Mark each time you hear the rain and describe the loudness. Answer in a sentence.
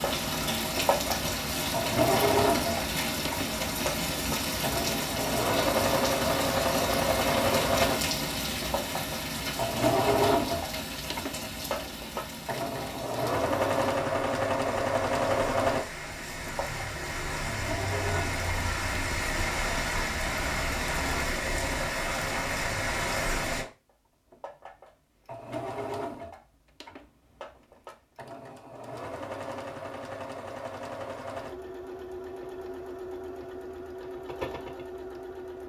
You can hear the rain from 0.0 to 23.6 s, getting quieter then louder.